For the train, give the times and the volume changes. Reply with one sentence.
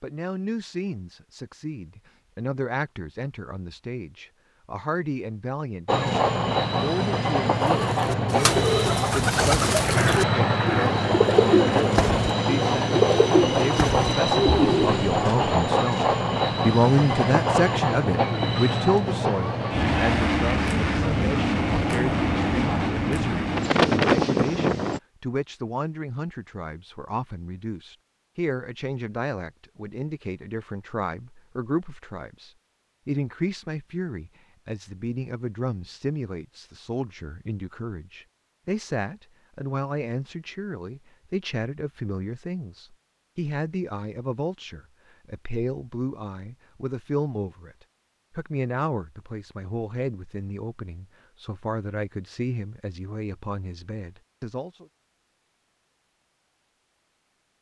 The train can be heard from 5.8 to 25.0 s, at a steady volume.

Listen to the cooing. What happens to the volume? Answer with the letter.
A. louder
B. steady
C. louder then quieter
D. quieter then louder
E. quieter
B.